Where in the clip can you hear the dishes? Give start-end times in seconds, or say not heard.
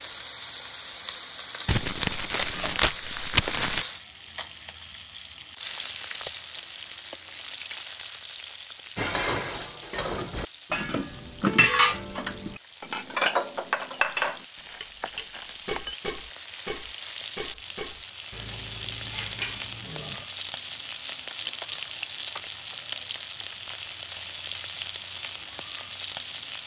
8.9-20.2.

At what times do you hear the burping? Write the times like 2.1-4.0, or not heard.
not heard.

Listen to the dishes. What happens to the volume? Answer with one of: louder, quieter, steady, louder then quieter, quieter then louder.
louder then quieter.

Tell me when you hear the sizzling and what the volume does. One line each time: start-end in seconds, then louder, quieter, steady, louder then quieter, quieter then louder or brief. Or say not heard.
0.0-26.6 quieter then louder.